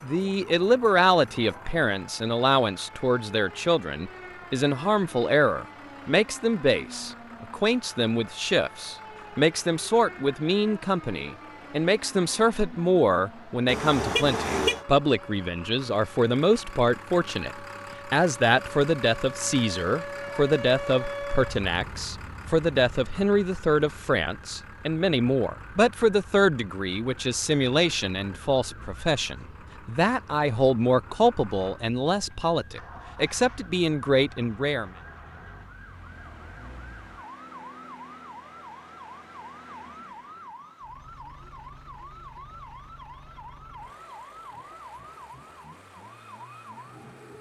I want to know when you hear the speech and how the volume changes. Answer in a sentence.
The speech can be heard from 0.0 to 34.9 s, at a steady volume.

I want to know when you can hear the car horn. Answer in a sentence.
You can hear the car horn from 13.7 to 14.8 s.